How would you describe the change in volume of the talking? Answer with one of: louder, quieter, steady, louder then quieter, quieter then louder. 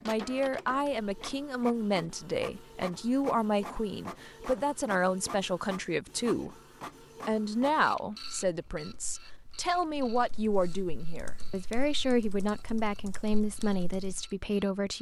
steady.